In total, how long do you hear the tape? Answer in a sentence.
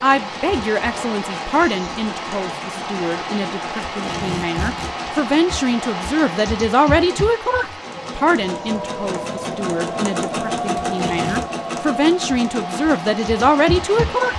The tape can be heard for 2 seconds in total.